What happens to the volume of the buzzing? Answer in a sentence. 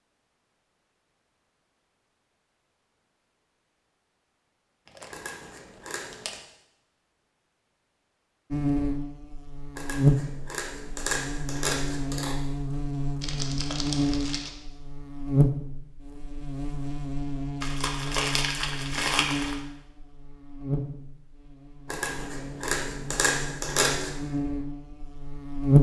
The loudness of the buzzing goes down.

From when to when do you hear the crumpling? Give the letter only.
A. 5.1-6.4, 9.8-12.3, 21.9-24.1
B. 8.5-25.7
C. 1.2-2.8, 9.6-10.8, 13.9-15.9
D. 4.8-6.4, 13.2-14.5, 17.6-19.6
D.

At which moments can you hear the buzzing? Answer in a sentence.
You can hear the buzzing from 8.5 to 25.7 s.